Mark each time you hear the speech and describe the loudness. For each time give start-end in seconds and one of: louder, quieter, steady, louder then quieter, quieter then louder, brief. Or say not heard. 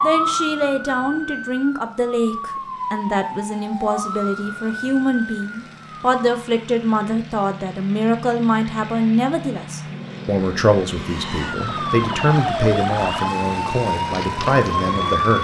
0.0-15.3 steady.